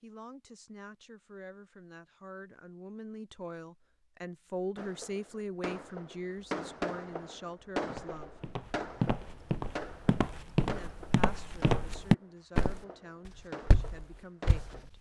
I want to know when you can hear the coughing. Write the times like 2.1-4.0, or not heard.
not heard.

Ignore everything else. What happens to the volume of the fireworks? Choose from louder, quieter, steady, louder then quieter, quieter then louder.
quieter.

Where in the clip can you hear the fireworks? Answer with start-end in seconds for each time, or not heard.
4.8-14.8.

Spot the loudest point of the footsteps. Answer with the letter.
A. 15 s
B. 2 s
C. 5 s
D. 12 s
D.